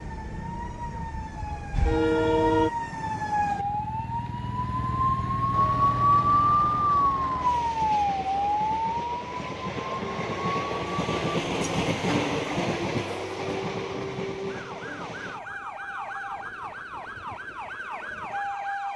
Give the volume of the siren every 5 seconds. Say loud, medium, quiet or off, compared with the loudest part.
medium, loud, quiet, quiet.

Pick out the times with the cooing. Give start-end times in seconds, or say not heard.
not heard.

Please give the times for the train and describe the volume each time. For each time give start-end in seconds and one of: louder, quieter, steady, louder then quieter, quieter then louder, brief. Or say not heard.
0.1-2.7 brief
5.5-18.9 louder then quieter.